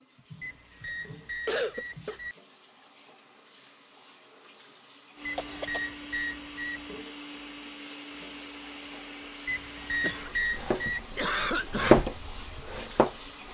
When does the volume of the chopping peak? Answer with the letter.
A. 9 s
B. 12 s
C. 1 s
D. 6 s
B.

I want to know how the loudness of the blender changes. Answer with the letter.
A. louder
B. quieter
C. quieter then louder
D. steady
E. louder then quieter
D.